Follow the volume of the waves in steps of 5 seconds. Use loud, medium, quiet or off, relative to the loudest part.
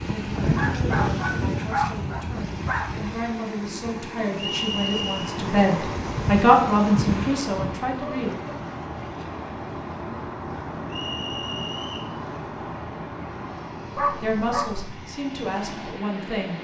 loud, loud, quiet, medium.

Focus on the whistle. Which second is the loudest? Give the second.
5 s.